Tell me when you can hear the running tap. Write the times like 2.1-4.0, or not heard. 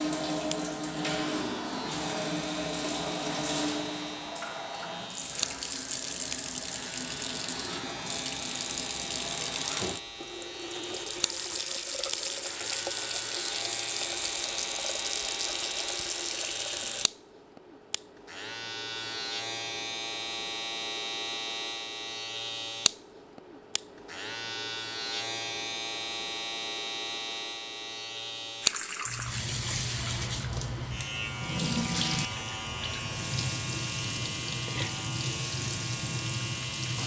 0.0-17.1, 28.6-37.0.